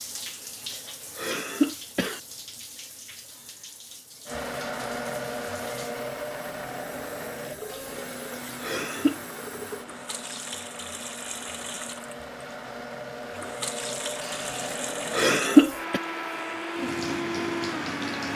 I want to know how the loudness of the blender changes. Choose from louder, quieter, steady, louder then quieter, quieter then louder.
quieter then louder.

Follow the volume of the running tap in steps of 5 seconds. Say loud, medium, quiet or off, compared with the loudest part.
medium, medium, loud, loud.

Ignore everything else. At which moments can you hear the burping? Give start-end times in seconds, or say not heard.
not heard.